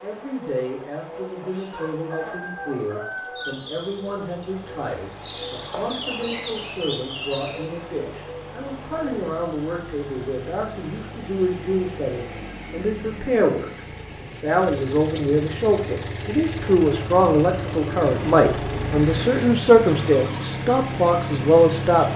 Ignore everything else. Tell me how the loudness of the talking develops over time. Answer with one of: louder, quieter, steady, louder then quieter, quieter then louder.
louder.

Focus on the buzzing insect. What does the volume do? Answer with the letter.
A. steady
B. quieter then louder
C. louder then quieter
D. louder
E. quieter
C.